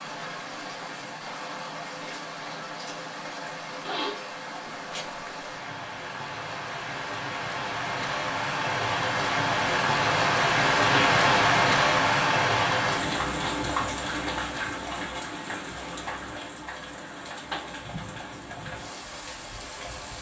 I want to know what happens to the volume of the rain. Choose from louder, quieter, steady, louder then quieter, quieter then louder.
louder then quieter.